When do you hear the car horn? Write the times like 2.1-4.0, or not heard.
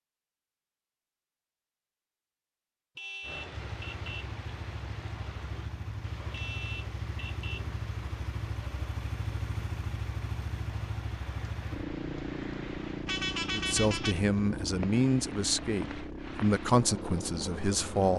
3.0-4.3, 6.3-7.7, 13.1-14.2.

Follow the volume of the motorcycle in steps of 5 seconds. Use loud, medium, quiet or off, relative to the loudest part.
medium, loud, loud, loud.